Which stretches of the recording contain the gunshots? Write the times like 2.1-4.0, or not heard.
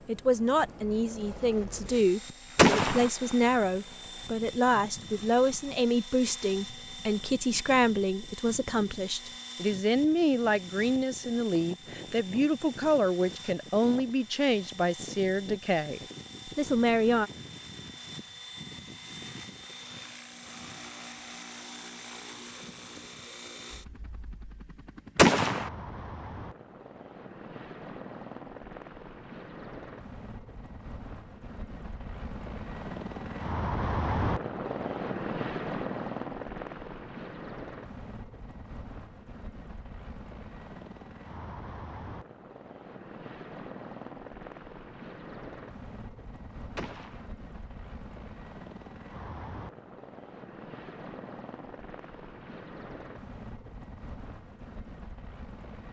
2.5-3.1, 25.1-25.7, 46.8-47.2.